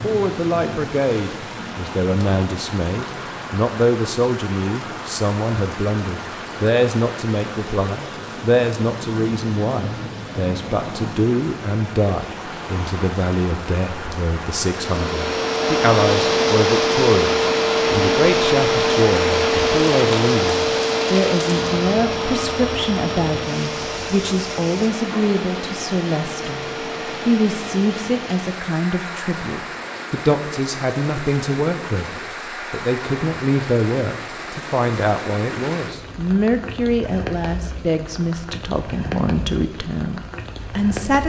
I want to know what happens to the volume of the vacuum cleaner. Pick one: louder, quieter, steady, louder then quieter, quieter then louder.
quieter.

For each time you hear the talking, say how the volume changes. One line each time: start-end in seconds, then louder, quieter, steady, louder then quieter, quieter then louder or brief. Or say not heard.
0.0-41.2 steady.